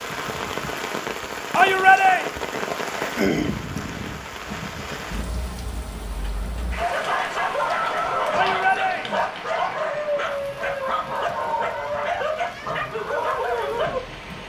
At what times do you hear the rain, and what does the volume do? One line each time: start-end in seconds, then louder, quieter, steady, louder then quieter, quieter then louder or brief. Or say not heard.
0.0-14.4 quieter.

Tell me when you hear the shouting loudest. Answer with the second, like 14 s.
2 s.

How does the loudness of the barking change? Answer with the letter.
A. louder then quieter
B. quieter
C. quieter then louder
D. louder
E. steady
E.